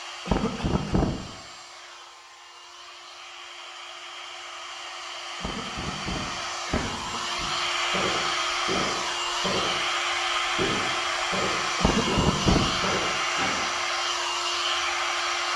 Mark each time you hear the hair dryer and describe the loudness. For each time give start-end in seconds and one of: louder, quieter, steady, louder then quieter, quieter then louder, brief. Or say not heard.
0.0-15.5 louder.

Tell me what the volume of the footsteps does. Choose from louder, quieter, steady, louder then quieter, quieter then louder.
steady.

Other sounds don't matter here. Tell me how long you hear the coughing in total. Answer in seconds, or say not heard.
4 s.